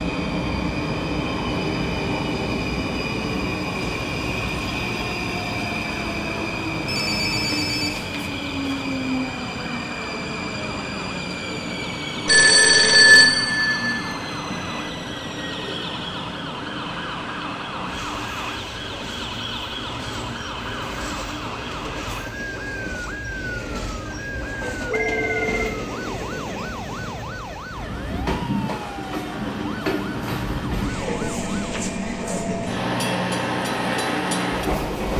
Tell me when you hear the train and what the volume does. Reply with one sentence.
You can hear the train from 0.0 to 35.1 s, getting quieter then louder.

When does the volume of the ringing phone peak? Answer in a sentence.
The volume of the ringing phone peaks at 13 seconds.